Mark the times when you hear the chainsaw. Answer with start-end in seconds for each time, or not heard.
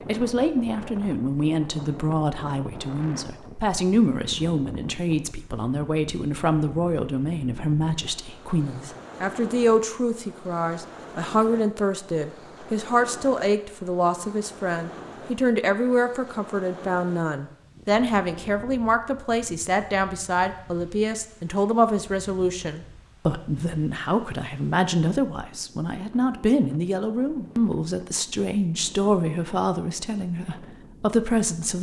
not heard.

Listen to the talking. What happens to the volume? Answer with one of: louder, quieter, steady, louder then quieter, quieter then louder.
steady.